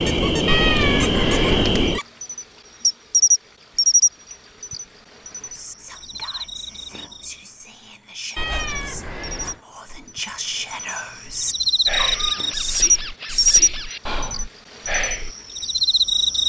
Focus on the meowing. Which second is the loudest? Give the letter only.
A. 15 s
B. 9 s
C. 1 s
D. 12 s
C.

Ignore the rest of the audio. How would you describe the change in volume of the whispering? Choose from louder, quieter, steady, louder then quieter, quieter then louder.
louder.